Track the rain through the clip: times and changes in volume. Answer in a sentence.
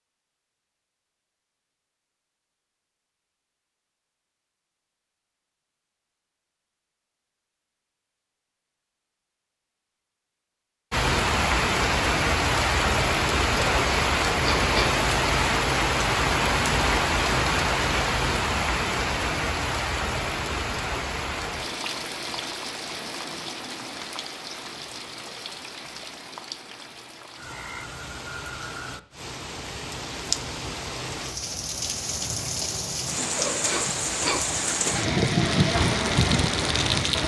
You can hear the rain from 10.9 to 37.2 s, getting quieter then louder.